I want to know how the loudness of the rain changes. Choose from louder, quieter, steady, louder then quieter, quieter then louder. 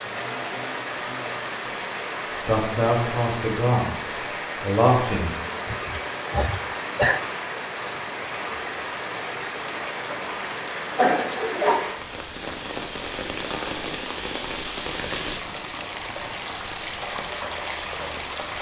steady.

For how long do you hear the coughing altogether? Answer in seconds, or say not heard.
3 s.